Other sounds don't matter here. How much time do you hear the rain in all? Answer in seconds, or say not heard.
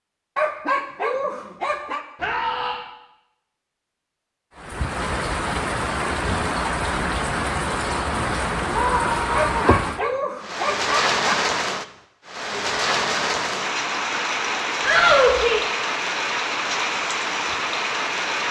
14 s.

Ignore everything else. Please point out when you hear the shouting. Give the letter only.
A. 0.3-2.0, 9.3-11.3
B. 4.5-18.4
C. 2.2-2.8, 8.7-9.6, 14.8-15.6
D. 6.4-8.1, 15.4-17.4
C.